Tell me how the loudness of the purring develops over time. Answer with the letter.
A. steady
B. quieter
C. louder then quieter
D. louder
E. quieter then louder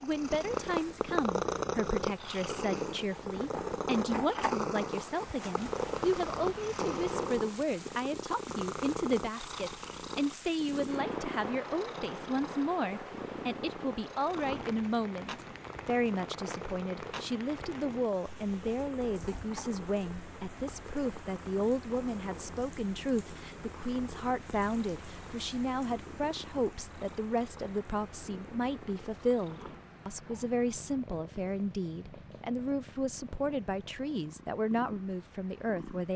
B.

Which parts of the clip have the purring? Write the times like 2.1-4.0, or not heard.
0.0-36.1.